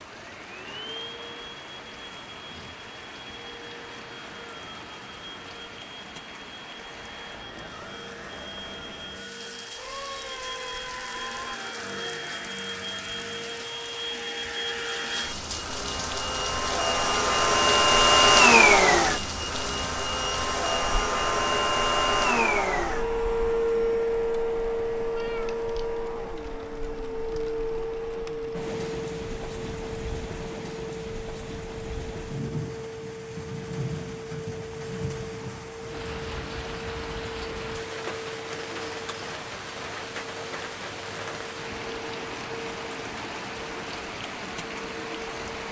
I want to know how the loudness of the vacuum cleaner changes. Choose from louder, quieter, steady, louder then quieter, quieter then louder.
louder then quieter.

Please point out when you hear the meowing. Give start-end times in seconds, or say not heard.
9.8-11.6, 25.0-25.9.